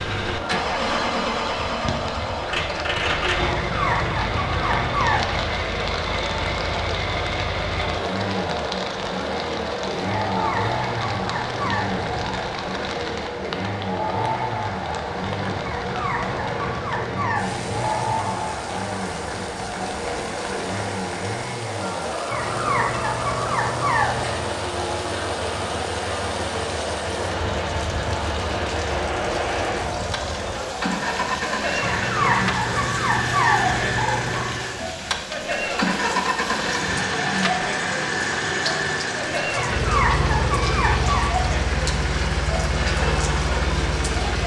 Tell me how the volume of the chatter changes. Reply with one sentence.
The volume of the chatter stays about the same.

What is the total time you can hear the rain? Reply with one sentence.
You can hear the rain for 44 seconds altogether.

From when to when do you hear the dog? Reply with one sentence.
The dog can be heard from 3.5 to 5.3 s, from 10.2 to 12.4 s, from 15.7 to 18.4 s, from 22.3 to 24.4 s, from 31.8 to 34.6 s and from 39.5 to 41.3 s.